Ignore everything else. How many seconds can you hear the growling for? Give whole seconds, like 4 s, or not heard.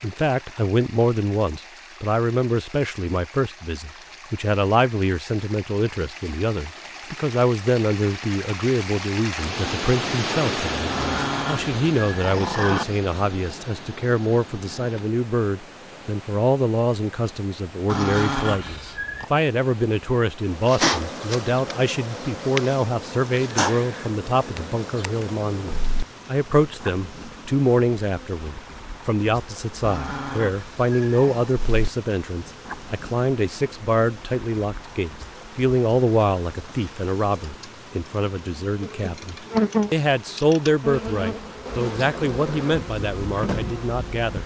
5 s.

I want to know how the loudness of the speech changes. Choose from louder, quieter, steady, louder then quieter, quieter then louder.
steady.